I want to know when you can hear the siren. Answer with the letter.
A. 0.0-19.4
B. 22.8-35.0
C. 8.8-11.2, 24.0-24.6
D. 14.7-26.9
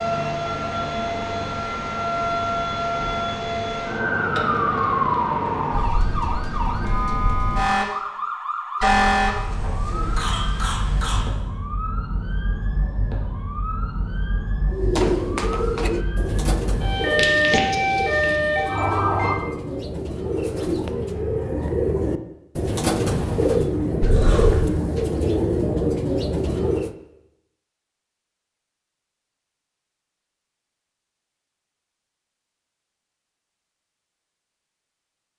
A.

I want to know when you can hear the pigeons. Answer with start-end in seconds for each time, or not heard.
14.7-26.9.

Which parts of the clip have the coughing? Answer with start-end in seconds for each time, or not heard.
8.8-11.2, 24.0-24.6.